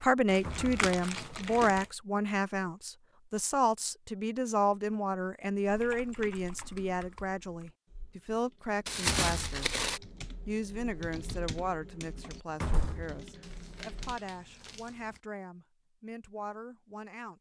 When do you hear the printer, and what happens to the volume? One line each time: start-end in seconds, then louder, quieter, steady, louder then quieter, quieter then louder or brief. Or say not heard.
not heard.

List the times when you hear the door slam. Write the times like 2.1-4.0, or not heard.
0.3-0.9, 8.9-9.7, 12.4-13.2.